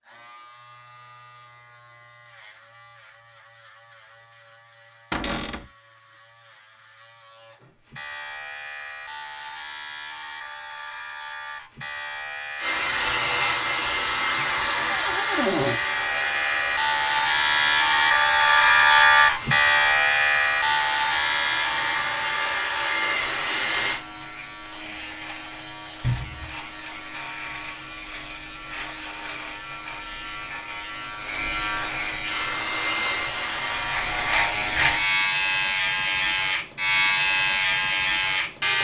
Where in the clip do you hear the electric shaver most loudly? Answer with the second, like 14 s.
19 s.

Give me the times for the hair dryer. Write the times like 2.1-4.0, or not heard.
12.6-24.0, 32.2-34.4.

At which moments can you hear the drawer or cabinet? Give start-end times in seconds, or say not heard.
5.1-5.7, 14.2-15.8, 26.0-26.6.